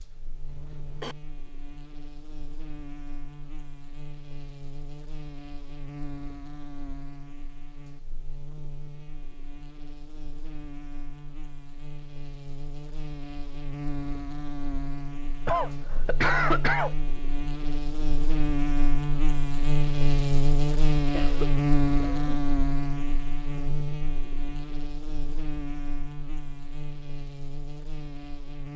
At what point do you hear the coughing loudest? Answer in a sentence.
The volume of the coughing peaks at 16 seconds.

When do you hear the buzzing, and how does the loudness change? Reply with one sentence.
The buzzing can be heard from 0.0 to 28.7 s, getting louder then quieter.